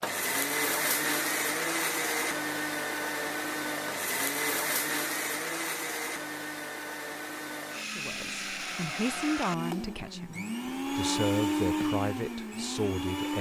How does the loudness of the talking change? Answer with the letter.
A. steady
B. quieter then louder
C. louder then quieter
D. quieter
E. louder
B.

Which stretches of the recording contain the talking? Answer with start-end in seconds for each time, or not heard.
8.0-13.3.